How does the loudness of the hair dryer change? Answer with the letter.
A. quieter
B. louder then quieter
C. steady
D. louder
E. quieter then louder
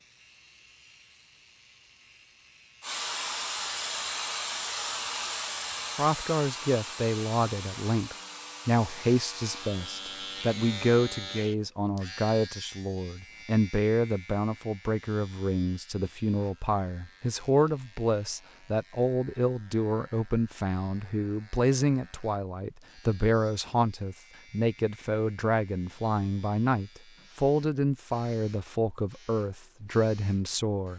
A.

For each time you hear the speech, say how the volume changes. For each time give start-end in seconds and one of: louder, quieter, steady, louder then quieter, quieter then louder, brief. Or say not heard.
6.0-30.9 steady.